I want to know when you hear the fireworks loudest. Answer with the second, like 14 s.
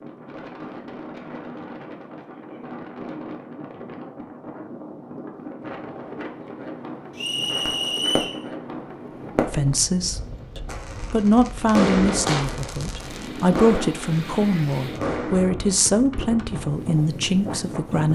12 s.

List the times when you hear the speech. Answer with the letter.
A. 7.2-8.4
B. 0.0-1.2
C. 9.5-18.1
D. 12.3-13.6
C.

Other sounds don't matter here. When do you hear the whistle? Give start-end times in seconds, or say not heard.
7.2-8.4.